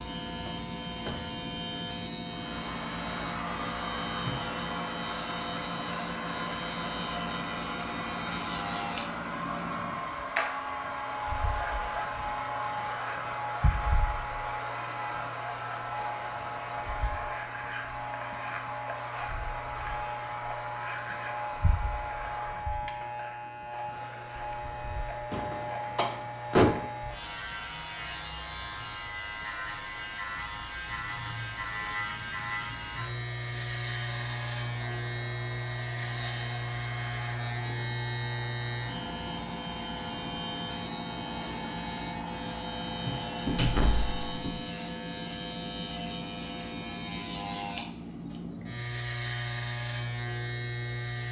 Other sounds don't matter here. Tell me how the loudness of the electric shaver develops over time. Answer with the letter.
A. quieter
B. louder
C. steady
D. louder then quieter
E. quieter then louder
C.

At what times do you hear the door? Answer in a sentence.
You can hear the door from 0.5 to 1.2 s, from 25.3 to 26.8 s and from 43.5 to 44.6 s.